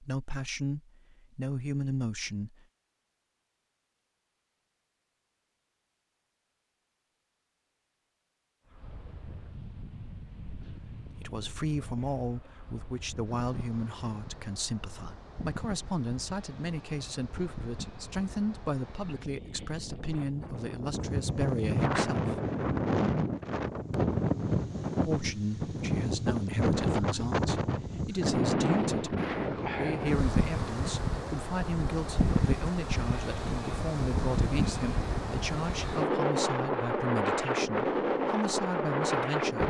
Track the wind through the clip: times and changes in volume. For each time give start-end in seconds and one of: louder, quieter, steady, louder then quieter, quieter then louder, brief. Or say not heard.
8.7-39.6 louder.